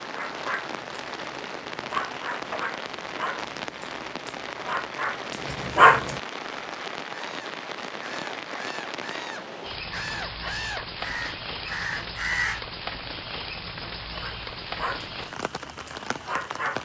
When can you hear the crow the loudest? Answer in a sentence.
The loudest moment of the crow is at 12 seconds.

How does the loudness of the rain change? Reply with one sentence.
The loudness of the rain stays about the same.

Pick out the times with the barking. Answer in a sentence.
You can hear the barking from 0.0 to 6.2 s and from 14.1 to 16.8 s.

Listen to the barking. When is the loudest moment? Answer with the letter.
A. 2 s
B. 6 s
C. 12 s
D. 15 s
B.